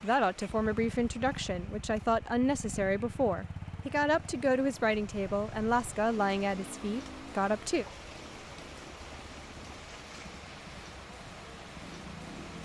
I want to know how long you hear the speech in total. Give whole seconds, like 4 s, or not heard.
8 s.